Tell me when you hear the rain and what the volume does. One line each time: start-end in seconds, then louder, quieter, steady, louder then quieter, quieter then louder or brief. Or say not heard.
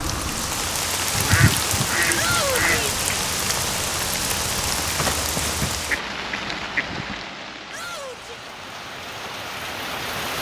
0.0-10.3 quieter.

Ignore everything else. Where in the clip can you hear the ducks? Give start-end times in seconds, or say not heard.
1.1-2.9, 5.8-7.2.